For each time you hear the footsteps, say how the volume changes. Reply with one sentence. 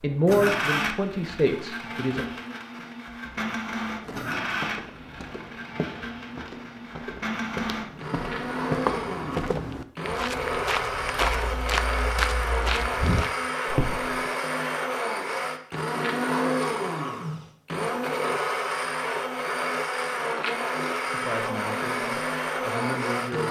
The footsteps can be heard from 4.0 to 14.2 s, getting louder.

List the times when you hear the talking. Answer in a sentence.
You can hear the talking from 0.0 to 2.4 s and from 21.1 to 23.4 s.